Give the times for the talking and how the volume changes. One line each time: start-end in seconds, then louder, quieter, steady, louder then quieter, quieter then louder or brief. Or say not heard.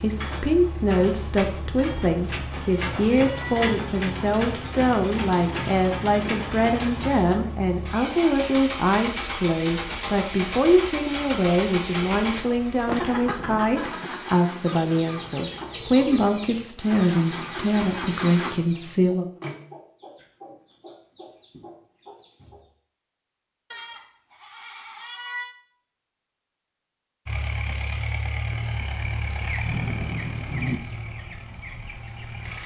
0.0-19.2 steady.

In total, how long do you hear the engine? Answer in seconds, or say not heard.
24 s.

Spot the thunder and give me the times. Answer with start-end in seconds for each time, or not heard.
12.8-14.2, 29.6-30.8.